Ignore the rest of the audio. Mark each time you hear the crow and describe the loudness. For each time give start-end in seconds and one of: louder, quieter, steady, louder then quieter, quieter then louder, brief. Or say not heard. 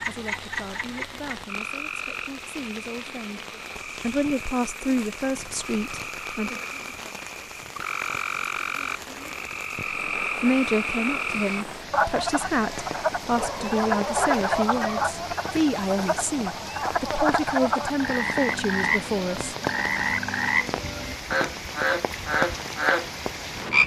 not heard.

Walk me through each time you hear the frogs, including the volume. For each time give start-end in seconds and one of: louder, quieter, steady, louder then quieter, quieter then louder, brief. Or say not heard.
0.0-23.8 louder.